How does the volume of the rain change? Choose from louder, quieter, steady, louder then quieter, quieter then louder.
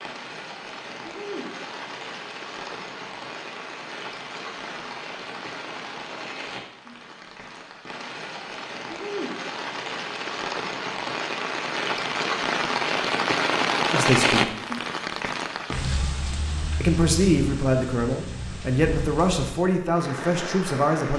louder then quieter.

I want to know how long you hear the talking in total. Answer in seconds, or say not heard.
5 s.